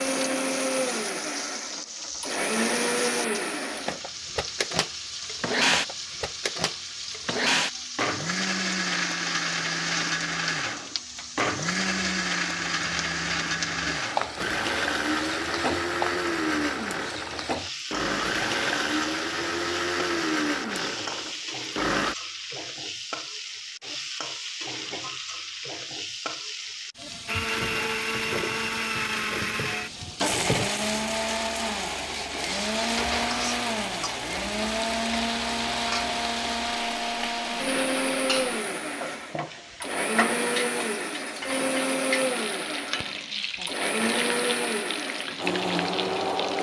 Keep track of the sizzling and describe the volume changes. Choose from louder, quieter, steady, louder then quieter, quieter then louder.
steady.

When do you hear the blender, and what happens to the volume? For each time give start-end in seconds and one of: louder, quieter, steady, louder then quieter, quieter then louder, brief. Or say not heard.
0.0-22.1 steady
27.2-46.5 steady.